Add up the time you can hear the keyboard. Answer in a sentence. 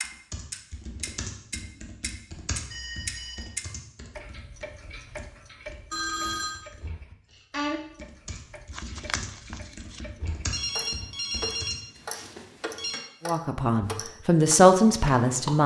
You can hear the keyboard for 12 seconds altogether.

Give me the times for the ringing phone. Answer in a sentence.
The ringing phone can be heard from 2.7 to 3.5 s, from 5.9 to 6.5 s and from 10.5 to 13.0 s.